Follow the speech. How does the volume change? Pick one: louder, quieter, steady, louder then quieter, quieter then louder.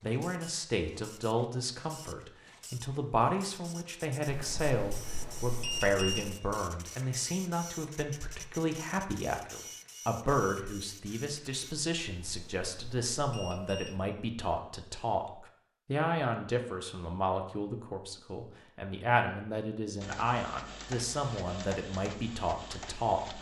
steady.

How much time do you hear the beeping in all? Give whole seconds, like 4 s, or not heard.
4 s.